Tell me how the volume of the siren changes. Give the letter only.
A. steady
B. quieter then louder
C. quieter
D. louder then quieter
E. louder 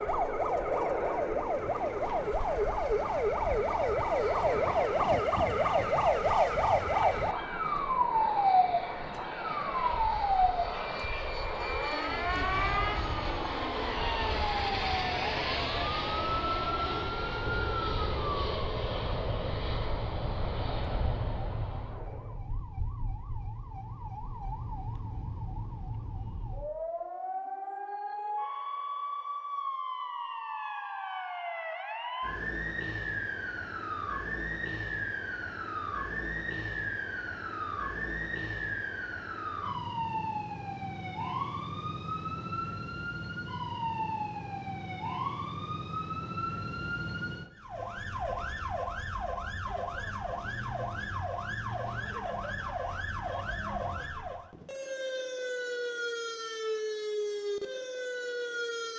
C.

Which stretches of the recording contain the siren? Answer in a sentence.
You can hear the siren from 0.0 to 58.9 s.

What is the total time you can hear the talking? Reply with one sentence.
The talking can't be heard in this clip.